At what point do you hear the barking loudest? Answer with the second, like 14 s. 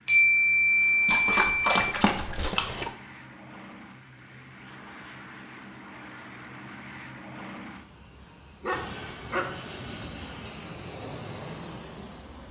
2 s.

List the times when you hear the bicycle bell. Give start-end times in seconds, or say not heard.
0.1-1.8.